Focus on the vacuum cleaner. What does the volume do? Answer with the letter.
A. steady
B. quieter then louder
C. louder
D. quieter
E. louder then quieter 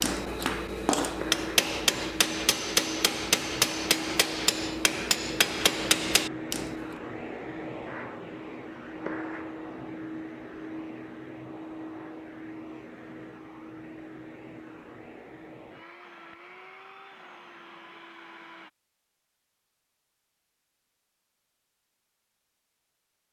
D.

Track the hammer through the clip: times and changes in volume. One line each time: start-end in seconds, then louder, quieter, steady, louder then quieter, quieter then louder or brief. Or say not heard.
0.0-6.8 steady.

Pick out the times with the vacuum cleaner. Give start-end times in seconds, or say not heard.
0.0-18.7.